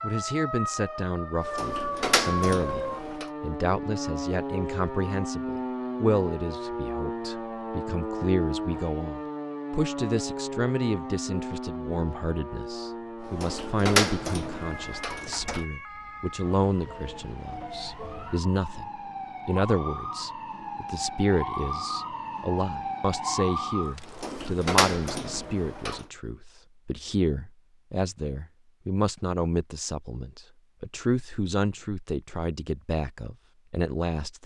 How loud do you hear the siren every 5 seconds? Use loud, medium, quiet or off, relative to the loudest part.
loud, loud, loud, medium, loud, off, off.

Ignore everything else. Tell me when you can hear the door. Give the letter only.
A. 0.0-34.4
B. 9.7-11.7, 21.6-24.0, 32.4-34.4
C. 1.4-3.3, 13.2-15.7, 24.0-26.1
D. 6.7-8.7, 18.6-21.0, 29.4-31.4
C.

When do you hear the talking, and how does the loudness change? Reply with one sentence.
The talking can be heard from 0.0 to 34.4 s, at a steady volume.